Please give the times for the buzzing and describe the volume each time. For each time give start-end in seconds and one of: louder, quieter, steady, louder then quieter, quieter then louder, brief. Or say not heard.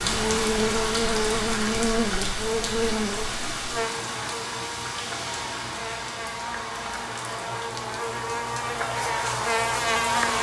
0.0-10.3 quieter then louder.